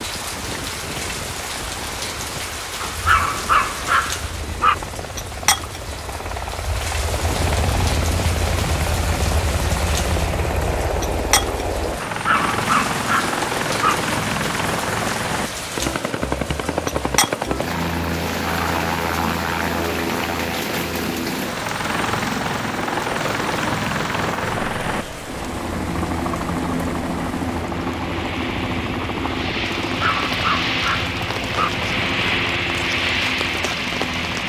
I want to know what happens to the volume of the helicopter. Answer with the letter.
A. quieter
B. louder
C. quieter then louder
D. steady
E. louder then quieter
B.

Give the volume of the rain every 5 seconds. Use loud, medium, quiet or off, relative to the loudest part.
loud, loud, loud, loud, loud, medium, loud.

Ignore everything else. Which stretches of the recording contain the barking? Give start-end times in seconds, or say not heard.
2.8-4.8, 12.1-13.9, 30.0-31.7.